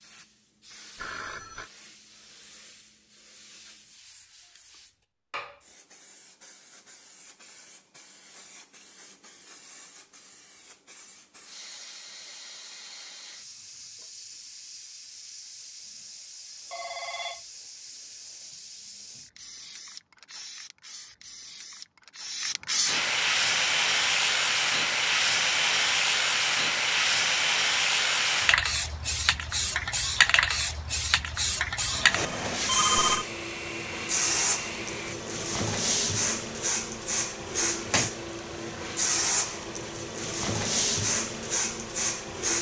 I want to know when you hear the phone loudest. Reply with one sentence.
The volume of the phone peaks at 33 seconds.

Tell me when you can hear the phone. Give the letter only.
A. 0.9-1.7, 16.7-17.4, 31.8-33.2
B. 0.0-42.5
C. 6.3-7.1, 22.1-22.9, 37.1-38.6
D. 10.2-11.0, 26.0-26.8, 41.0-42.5
A.